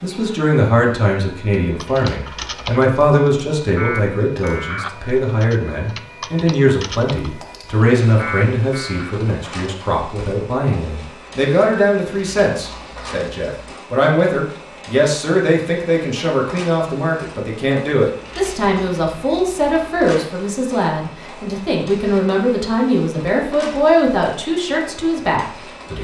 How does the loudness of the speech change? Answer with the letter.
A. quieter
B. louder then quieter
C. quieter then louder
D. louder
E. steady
E.